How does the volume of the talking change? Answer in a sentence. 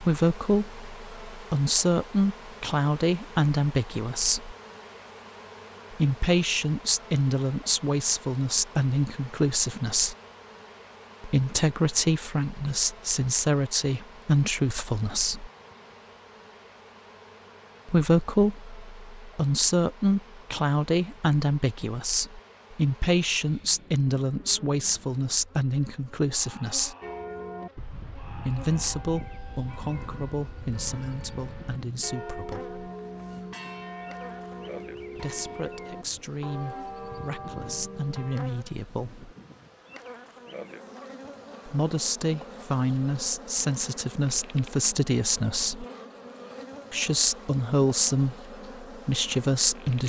The loudness of the talking goes down, then up.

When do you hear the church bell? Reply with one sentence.
The church bell can be heard from 27.0 to 38.4 s.